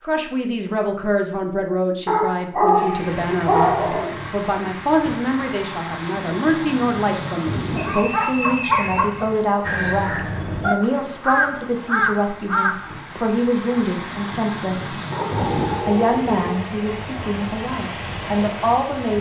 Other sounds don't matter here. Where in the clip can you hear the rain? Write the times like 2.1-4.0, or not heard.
2.9-19.1.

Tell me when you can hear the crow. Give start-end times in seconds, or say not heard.
9.6-13.2.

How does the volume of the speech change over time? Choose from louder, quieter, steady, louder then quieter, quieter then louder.
steady.